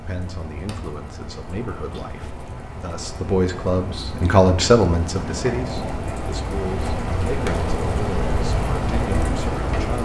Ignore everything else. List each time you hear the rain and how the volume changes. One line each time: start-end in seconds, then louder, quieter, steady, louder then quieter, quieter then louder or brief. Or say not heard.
0.0-9.9 louder.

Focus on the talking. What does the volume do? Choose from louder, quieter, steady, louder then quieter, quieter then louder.
louder then quieter.